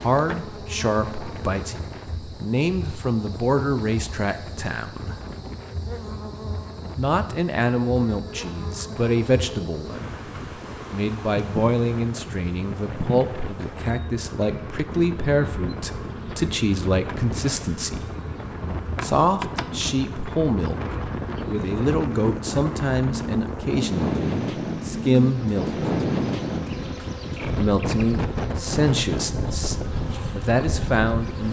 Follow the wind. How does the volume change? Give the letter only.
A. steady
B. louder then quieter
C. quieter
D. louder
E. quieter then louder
D.